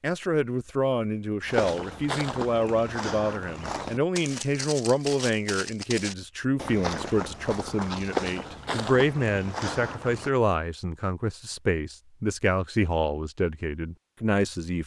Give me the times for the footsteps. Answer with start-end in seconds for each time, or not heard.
1.4-10.3.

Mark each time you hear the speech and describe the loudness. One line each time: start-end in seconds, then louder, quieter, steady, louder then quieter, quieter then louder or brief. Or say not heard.
0.0-14.8 steady.